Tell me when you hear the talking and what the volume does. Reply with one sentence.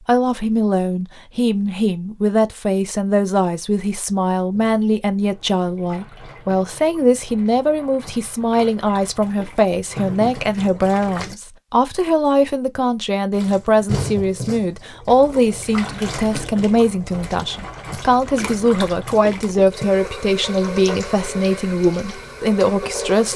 You can hear the talking from 0.1 to 23.3 s, at a steady volume.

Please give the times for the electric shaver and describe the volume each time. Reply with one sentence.
The electric shaver can't be heard in this clip.